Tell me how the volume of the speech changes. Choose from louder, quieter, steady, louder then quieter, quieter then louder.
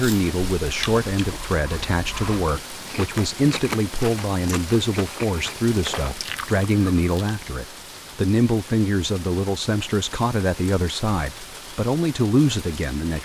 steady.